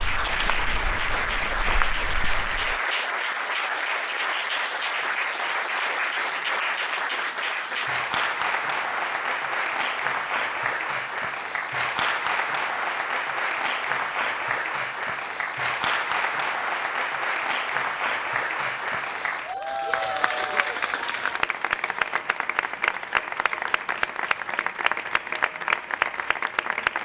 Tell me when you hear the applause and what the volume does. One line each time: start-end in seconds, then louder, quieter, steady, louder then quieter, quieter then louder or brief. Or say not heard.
0.0-27.0 steady.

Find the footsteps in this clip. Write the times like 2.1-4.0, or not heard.
0.0-2.8.